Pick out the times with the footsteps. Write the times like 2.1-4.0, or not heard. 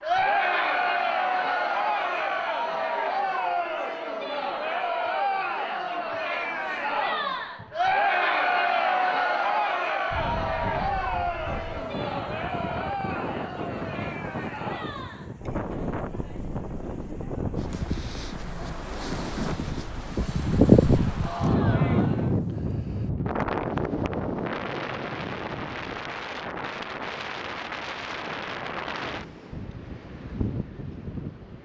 not heard.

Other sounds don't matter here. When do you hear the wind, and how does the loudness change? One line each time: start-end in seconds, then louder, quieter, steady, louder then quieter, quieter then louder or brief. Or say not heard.
10.1-31.6 louder then quieter.